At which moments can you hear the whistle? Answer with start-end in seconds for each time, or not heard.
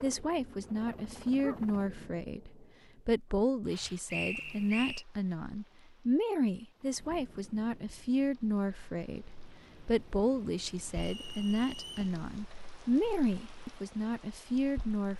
4.1-5.0, 10.9-12.2.